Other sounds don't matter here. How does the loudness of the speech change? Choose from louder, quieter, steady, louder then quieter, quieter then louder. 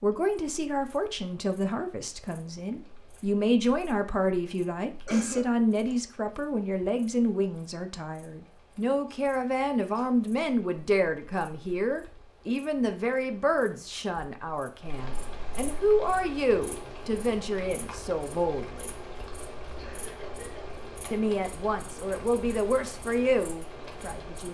steady.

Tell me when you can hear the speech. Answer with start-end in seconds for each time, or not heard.
0.0-18.9, 21.1-24.4.